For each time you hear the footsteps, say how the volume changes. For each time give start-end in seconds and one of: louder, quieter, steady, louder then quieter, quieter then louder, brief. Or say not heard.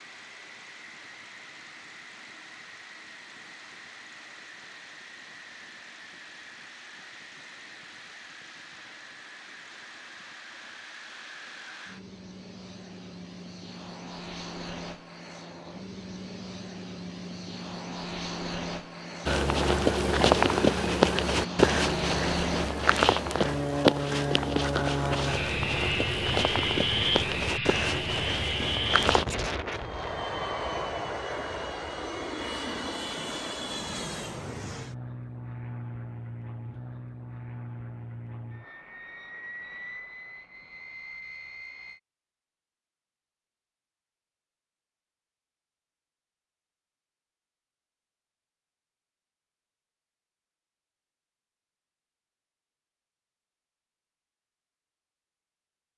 19.2-29.2 quieter.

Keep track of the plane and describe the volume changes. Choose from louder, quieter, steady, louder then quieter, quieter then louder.
louder then quieter.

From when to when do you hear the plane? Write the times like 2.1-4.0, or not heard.
0.0-42.0.